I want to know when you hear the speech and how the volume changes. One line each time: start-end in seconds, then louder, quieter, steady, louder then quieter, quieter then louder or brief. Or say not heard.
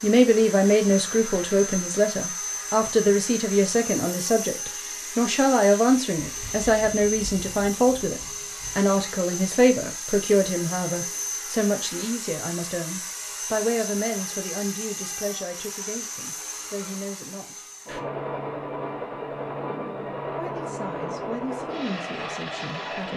0.0-17.6 quieter
20.4-23.1 brief.